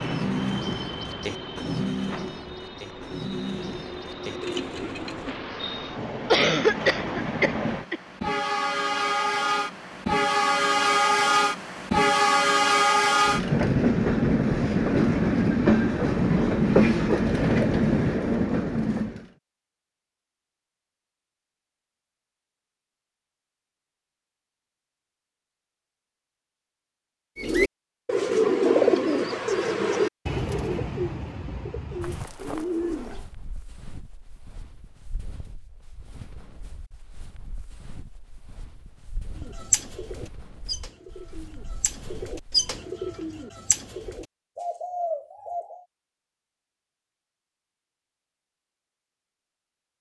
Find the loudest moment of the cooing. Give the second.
29 s.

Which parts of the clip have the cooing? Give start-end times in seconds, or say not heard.
0.0-5.3, 27.4-33.3, 39.4-45.9.